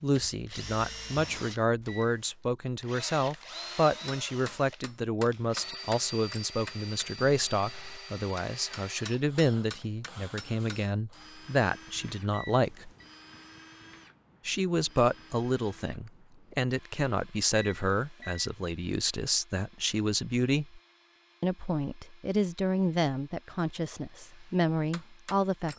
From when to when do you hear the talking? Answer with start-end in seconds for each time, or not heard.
0.0-12.9, 14.4-20.8, 21.4-25.7.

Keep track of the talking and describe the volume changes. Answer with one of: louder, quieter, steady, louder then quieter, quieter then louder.
steady.